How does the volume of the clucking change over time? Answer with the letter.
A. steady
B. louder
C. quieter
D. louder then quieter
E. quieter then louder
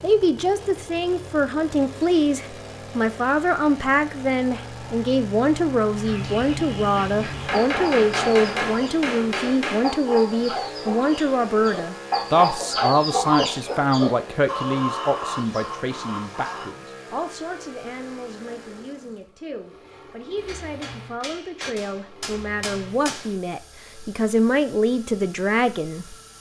D.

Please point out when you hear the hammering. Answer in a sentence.
The hammering can be heard from 7.5 to 9.9 s and from 20.4 to 23.4 s.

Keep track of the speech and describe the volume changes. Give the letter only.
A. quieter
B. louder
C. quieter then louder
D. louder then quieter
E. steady
C.